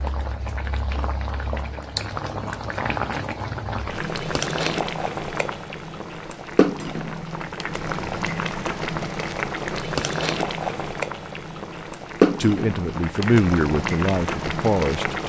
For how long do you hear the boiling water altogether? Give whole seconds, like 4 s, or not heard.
15 s.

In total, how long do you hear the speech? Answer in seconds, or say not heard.
3 s.